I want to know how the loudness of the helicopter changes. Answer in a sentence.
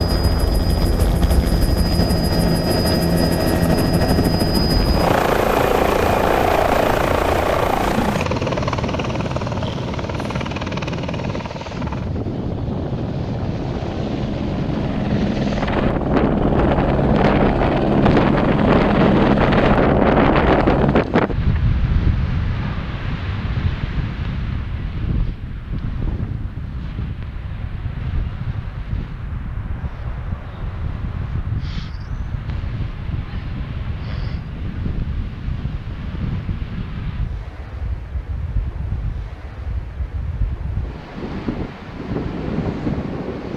The loudness of the helicopter goes down, then up.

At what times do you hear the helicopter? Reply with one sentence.
The helicopter can be heard from 0.0 to 21.1 s.